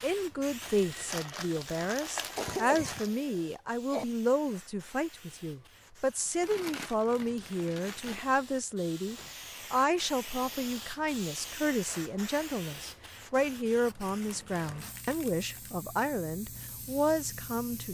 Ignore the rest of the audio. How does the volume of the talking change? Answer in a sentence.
The volume of the talking stays about the same.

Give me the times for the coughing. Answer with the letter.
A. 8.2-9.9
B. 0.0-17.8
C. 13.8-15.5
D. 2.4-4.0
D.